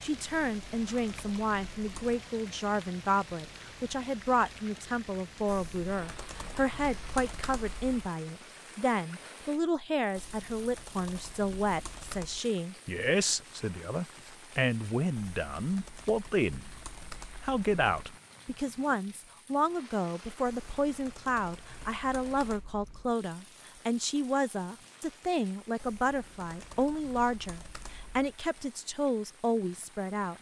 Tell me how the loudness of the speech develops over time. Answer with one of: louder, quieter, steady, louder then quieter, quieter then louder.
steady.